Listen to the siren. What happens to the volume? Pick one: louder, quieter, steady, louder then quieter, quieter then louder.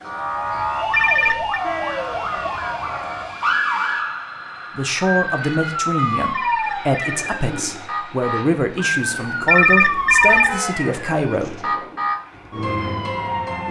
steady.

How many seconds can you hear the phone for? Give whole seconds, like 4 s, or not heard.
3 s.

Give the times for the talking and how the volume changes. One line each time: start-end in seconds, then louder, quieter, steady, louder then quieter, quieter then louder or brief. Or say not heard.
4.8-11.7 steady.